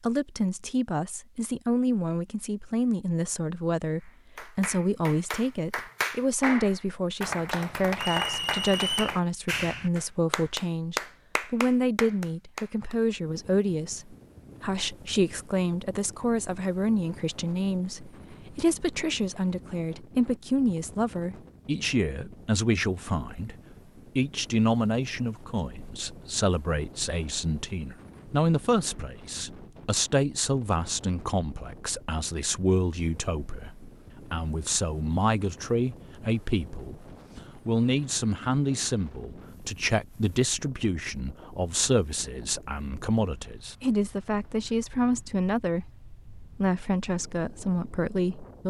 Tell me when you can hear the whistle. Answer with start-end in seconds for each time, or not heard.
8.0-9.2.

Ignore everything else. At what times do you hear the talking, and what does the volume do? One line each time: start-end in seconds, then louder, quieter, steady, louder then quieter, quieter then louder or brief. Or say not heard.
0.0-23.6 steady
24.1-48.6 steady.